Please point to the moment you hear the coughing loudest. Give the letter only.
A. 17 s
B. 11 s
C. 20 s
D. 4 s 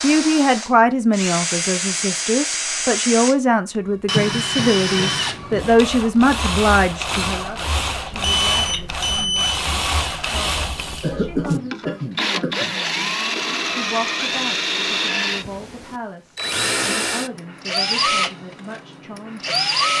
B.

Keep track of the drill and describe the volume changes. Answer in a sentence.
The loudness of the drill stays about the same.